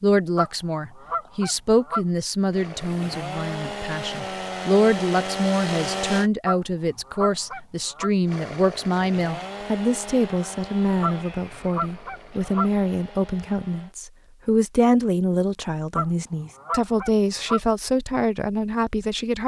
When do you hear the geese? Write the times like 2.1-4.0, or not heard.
0.3-2.0, 6.5-8.1, 11.0-12.7, 15.9-17.6.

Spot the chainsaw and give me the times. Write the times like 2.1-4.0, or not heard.
2.5-6.3, 8.2-13.9.